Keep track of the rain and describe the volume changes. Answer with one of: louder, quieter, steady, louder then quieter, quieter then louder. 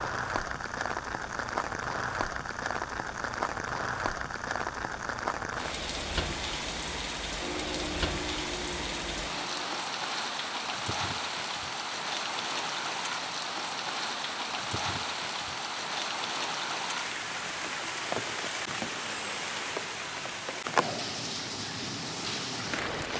steady.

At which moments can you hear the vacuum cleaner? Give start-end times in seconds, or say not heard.
7.4-9.8.